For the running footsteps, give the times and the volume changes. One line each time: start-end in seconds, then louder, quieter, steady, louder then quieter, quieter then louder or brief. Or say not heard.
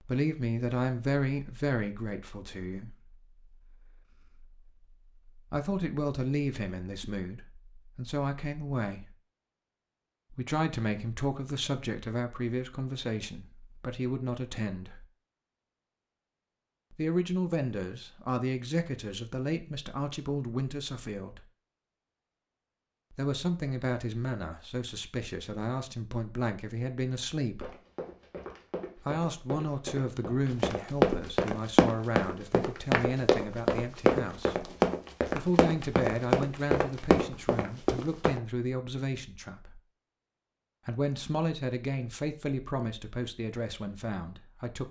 27.6-38.4 louder.